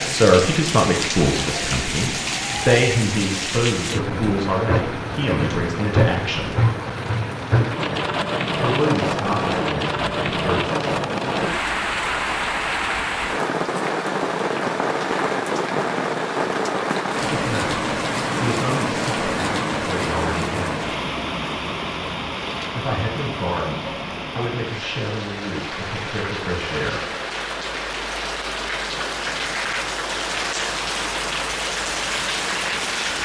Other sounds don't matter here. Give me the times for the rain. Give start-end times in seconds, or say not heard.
0.0-33.2.